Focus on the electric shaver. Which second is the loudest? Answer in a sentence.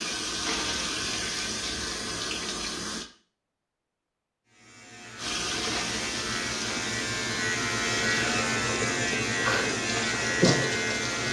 The volume of the electric shaver peaks at 10 seconds.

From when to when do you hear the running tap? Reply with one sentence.
The running tap can be heard from 0.0 to 3.1 s and from 5.2 to 11.2 s.